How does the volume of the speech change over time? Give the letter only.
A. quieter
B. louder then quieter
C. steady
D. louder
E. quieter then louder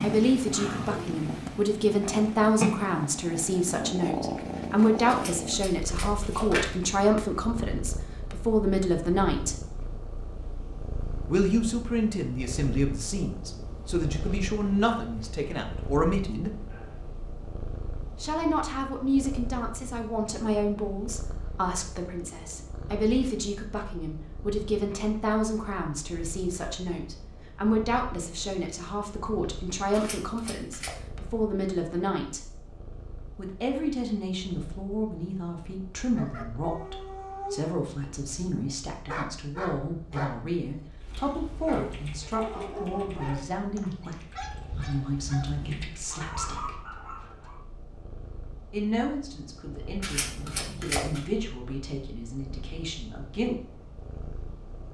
A.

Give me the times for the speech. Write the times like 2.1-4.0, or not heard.
0.0-9.6, 11.2-16.5, 18.2-32.4, 33.4-46.9, 48.7-53.5.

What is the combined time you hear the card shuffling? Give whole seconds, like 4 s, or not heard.
4 s.